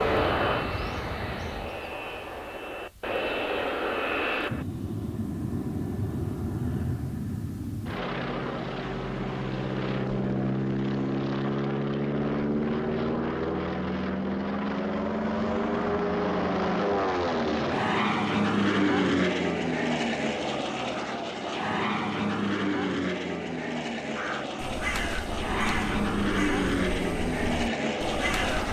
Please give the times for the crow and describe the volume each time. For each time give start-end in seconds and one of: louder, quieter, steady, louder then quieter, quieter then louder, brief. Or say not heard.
0.0-2.5 brief
24.1-28.6 quieter.